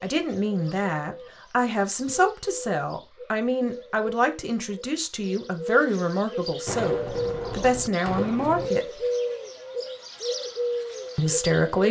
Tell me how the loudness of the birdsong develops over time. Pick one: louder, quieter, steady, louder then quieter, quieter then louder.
louder.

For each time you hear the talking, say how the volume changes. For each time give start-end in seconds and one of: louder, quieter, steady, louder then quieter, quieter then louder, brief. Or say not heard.
0.0-9.0 steady
11.2-11.8 brief.